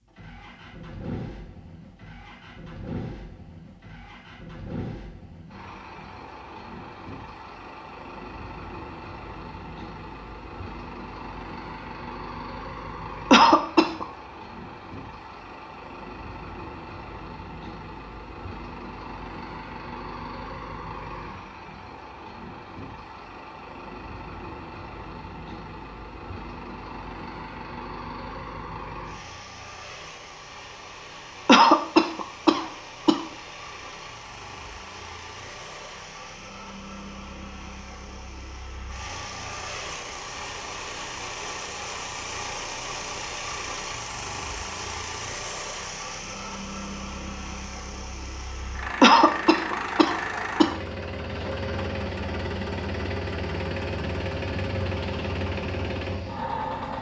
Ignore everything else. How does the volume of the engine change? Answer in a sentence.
The loudness of the engine goes up.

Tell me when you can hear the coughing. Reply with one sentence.
The coughing can be heard from 13.3 to 14.1 s, from 31.4 to 33.2 s and from 49.0 to 50.8 s.